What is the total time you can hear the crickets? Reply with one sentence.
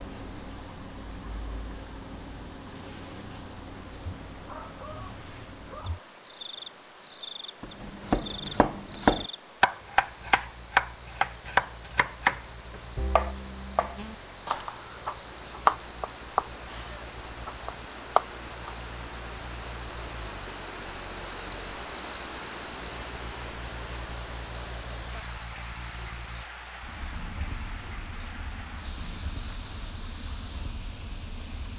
You can hear the crickets for 32 seconds altogether.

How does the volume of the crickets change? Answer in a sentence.
The volume of the crickets goes up.